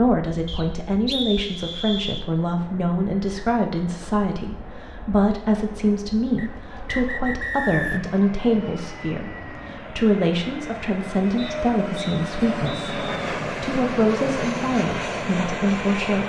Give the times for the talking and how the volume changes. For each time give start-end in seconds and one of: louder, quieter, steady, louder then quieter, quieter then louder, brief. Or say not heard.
0.0-16.2 steady.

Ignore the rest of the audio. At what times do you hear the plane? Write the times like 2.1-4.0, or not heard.
0.0-16.2.